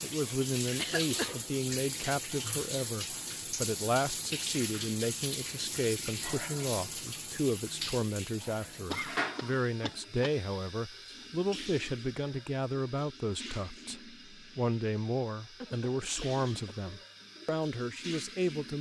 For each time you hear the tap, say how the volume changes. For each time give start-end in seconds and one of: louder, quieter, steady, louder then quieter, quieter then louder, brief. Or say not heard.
0.0-18.7 quieter.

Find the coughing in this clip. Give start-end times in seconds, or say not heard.
0.8-1.4, 8.9-10.3, 15.6-16.8.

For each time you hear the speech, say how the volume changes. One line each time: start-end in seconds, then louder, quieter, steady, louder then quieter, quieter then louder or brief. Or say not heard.
0.0-18.7 steady.